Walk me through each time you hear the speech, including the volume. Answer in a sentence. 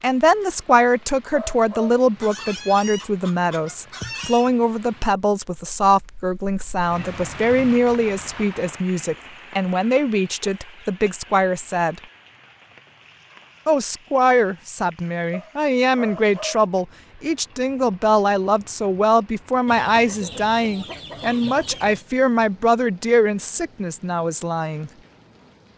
The speech can be heard from 0.0 to 12.0 s, at a steady volume; and from 13.7 to 24.9 s, at a steady volume.